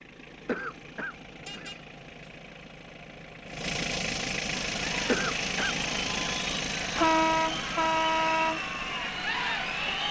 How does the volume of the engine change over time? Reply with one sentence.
The loudness of the engine goes up, then down.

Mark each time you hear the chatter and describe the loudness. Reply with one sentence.
The chatter can be heard from 4.5 to 10.0 s, getting louder.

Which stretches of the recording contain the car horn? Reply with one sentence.
The car horn can be heard from 1.4 to 2.3 s and from 7.0 to 8.6 s.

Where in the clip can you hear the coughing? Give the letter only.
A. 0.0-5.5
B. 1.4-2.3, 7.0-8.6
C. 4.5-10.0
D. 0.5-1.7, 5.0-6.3
D.